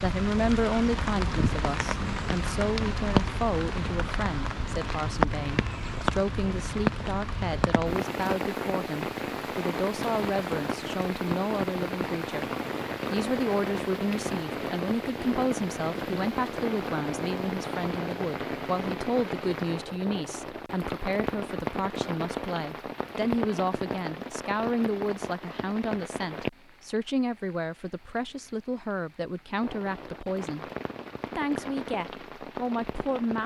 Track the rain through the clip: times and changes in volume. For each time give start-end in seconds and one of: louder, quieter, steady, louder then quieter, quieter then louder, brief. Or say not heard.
0.0-33.4 quieter.